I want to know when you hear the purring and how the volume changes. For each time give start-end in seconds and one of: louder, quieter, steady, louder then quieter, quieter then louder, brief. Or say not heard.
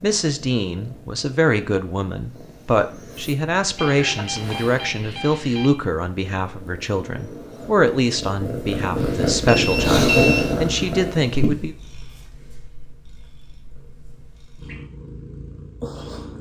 0.0-16.3 louder then quieter.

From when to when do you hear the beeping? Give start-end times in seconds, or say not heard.
3.8-5.7, 9.0-10.4.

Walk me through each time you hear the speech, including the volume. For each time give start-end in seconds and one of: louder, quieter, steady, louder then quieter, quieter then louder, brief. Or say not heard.
0.0-11.8 steady.